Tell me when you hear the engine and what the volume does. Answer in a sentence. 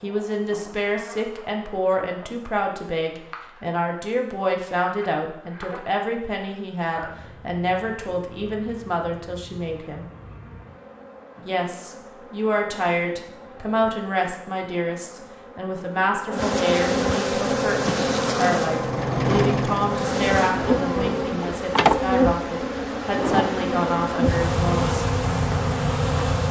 The engine can be heard from 17.3 to 21.4 s, getting louder then quieter.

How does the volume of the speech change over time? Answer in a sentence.
The volume of the speech stays about the same.